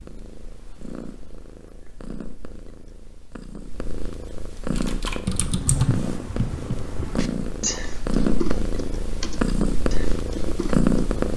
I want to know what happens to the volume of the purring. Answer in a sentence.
The volume of the purring goes up.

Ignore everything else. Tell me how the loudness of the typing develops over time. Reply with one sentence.
The volume of the typing goes down.